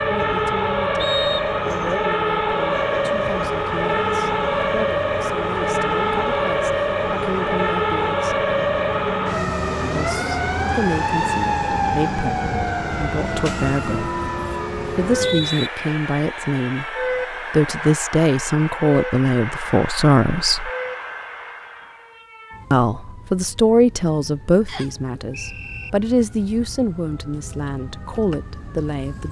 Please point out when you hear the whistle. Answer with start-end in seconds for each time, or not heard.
0.9-1.6, 15.0-15.7, 24.6-25.9.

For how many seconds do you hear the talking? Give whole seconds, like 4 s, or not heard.
25 s.